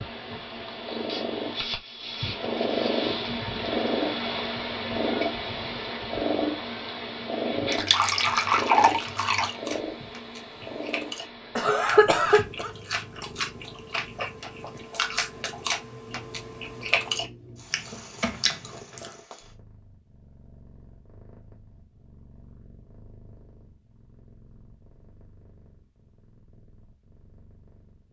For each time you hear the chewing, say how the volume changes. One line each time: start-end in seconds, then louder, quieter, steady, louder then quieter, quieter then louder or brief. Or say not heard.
8.9-19.1 louder.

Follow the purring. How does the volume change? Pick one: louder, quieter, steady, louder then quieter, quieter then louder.
quieter.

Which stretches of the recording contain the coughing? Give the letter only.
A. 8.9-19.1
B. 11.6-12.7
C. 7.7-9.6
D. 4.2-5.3
B.